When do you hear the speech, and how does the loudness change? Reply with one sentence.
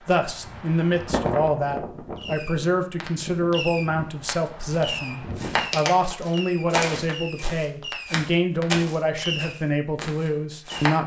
You can hear the speech from 0.1 to 11.0 s, at a steady volume.